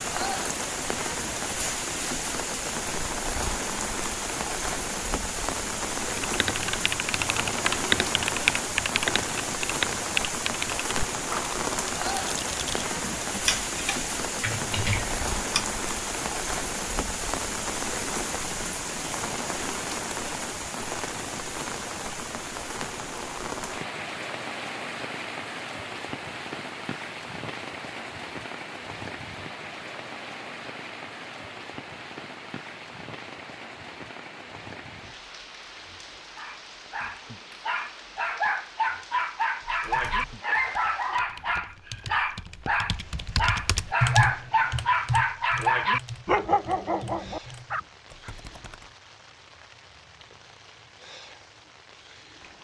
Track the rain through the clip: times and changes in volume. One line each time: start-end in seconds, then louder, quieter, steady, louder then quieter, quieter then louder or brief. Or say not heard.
0.0-52.5 quieter.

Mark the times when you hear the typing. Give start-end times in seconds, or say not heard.
6.2-15.7, 39.6-48.9.